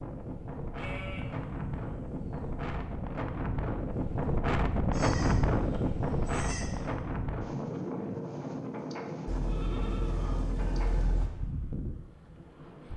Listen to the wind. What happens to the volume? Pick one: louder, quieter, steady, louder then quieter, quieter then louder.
louder then quieter.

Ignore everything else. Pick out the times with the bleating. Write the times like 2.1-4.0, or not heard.
0.8-2.8, 4.9-6.8, 9.2-11.3.